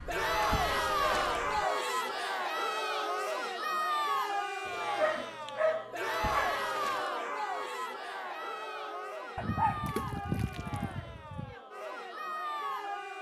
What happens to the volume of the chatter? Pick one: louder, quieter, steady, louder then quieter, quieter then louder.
quieter.